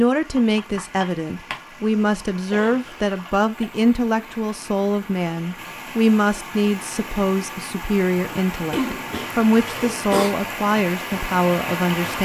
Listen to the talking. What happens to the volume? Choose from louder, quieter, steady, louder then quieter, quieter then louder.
steady.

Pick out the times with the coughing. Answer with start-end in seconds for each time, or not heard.
2.5-3.7, 8.7-10.3.